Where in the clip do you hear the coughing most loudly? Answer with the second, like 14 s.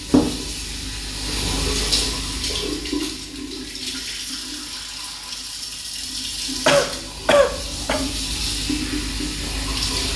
7 s.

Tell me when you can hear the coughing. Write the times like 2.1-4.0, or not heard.
6.7-8.1.